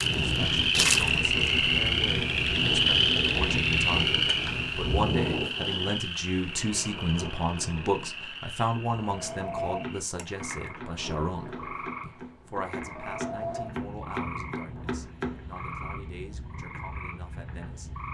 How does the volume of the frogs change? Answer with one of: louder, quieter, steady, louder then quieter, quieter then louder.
quieter.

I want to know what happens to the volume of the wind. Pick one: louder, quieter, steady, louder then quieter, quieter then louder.
quieter.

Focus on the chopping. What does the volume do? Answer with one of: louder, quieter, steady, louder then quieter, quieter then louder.
louder.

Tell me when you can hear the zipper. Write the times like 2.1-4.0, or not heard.
not heard.